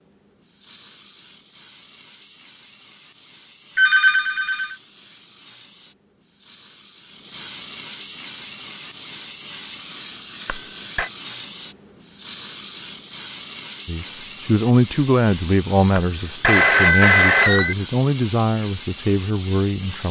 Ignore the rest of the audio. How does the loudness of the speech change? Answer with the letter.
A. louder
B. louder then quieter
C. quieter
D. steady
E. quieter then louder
C.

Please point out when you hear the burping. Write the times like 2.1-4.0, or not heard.
not heard.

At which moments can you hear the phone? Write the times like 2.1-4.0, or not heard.
3.8-4.8, 10.4-11.1, 15.9-17.8.